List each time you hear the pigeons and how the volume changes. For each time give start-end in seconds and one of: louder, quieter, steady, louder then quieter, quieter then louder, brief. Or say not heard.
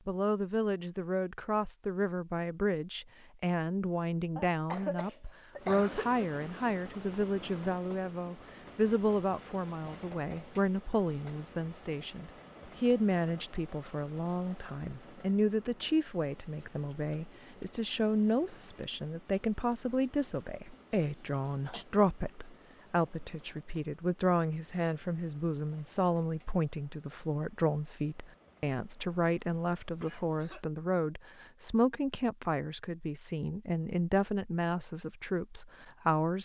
not heard.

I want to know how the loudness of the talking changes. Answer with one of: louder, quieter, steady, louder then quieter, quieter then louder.
steady.